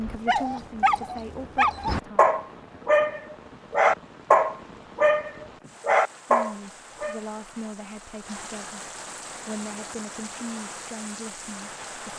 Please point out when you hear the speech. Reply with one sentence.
The speech can be heard from 0.0 to 2.2 s and from 6.2 to 12.1 s.